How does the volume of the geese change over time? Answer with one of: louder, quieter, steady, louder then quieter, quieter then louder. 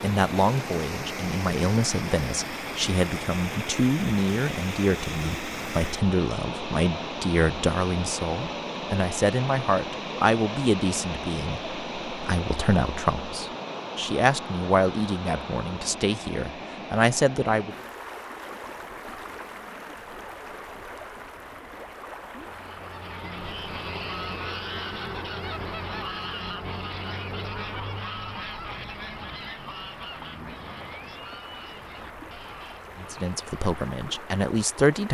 quieter.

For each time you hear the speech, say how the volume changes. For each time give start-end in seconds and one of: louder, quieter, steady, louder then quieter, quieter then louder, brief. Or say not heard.
0.0-17.8 steady
33.0-35.0 brief.